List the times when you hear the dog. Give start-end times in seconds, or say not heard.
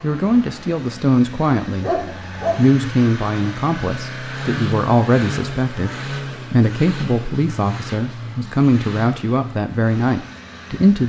1.8-2.6.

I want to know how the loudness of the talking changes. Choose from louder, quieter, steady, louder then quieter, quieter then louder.
steady.